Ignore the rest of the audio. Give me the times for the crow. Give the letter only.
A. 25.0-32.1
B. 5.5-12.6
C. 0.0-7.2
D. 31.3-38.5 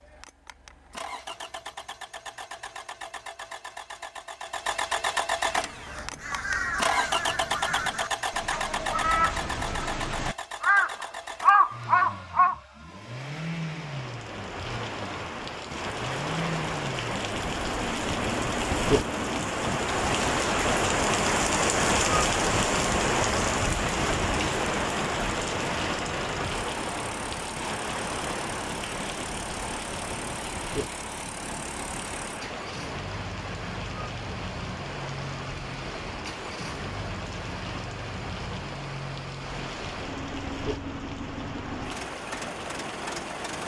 B.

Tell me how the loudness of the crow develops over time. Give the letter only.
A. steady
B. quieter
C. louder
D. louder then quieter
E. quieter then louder
C.